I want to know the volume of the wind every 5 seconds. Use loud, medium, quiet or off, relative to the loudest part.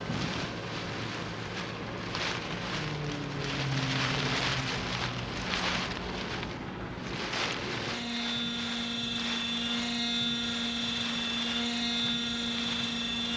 loud, loud, medium.